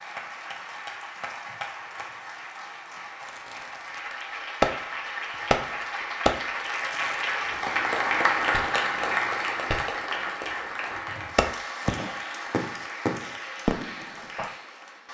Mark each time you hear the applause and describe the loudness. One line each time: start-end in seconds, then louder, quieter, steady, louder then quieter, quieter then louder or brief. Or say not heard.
0.0-15.0 louder then quieter.